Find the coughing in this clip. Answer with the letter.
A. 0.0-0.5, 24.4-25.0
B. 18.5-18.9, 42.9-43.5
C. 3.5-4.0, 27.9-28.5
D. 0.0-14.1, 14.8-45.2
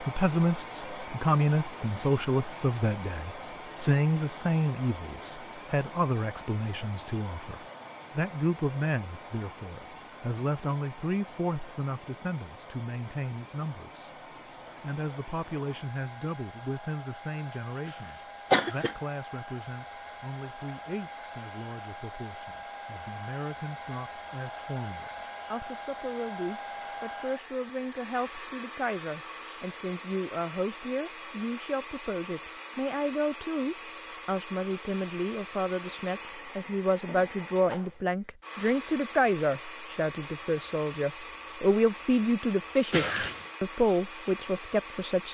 B.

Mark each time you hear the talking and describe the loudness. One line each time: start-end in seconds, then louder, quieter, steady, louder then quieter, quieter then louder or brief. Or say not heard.
0.0-14.1 quieter
14.8-45.2 louder.